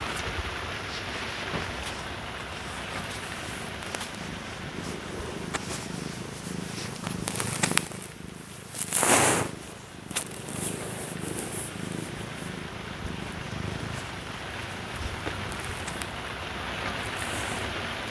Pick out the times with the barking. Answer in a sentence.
You can't hear the barking here.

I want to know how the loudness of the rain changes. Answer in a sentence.
The volume of the rain goes down, then up.